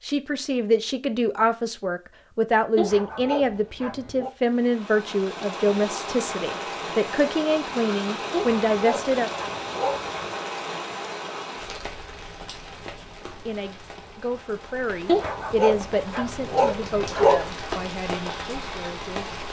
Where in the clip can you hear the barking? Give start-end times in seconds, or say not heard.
2.8-4.3, 8.3-10.3, 15.1-17.5.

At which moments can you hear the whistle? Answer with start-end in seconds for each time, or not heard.
not heard.